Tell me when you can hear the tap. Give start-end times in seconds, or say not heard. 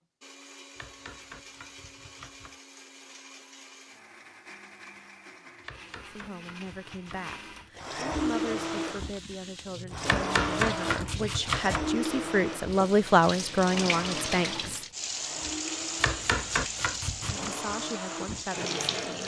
8.1-19.2.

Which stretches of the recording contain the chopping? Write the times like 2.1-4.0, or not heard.
0.8-2.5, 5.6-7.3, 10.1-11.8, 15.9-17.5.